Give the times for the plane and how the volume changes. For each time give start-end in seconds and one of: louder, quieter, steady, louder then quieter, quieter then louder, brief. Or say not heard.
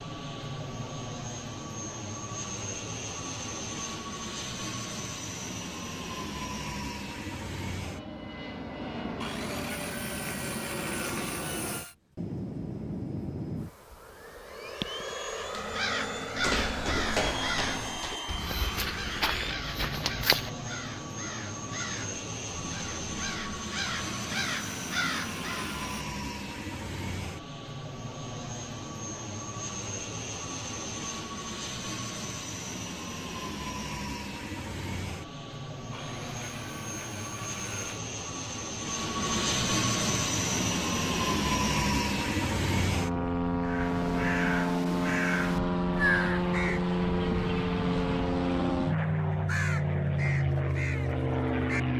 0.0-51.9 louder.